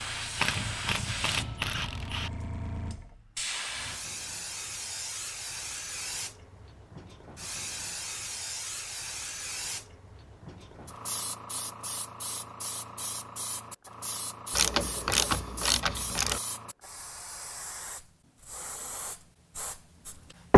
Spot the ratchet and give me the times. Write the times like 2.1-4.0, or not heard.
0.3-2.3, 14.5-16.4.